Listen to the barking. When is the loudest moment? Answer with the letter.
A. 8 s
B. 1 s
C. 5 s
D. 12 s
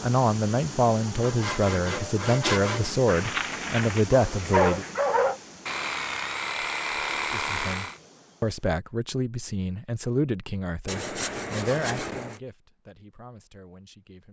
C.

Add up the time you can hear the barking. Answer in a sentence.
You can hear the barking for 2 seconds altogether.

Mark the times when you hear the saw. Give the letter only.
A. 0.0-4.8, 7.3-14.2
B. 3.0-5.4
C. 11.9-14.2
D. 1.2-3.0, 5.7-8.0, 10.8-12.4
D.